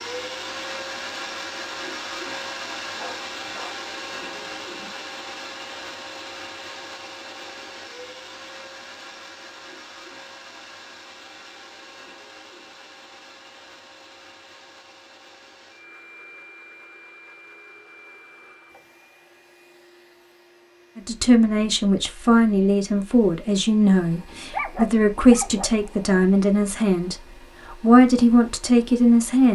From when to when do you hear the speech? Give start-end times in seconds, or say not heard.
20.9-29.5.